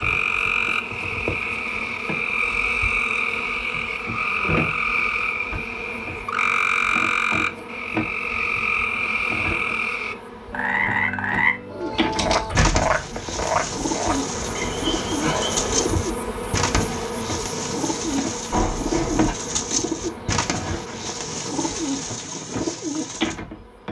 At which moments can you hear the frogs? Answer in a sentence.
The frogs can be heard from 0.0 to 15.8 s.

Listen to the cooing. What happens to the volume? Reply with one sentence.
The volume of the cooing stays about the same.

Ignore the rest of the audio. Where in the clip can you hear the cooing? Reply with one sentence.
You can hear the cooing from 11.7 to 23.4 s.